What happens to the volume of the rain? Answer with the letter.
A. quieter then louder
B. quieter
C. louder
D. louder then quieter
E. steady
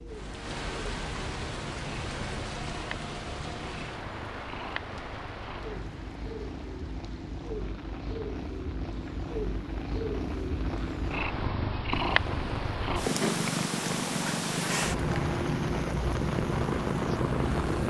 A.